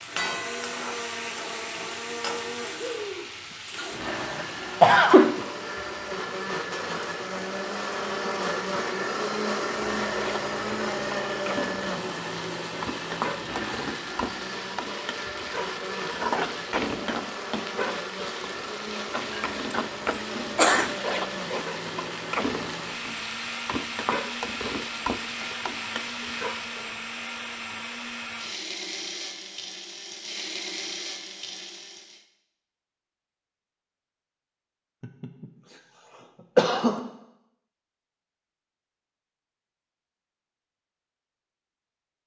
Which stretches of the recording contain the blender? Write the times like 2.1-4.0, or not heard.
0.0-32.2.